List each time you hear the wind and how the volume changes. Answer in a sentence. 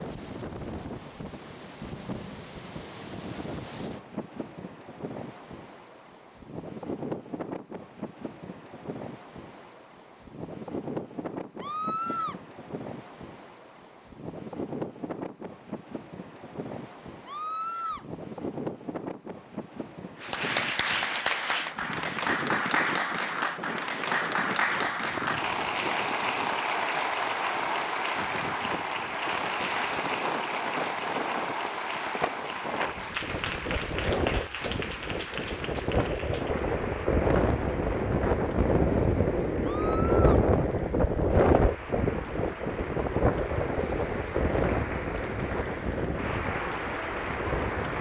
The wind can be heard from 0.0 to 47.9 s, getting louder.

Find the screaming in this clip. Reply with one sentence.
You can hear the screaming from 11.6 to 12.4 s, from 17.2 to 18.1 s and from 39.6 to 40.5 s.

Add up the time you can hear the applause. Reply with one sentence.
The applause can be heard for 28 seconds in total.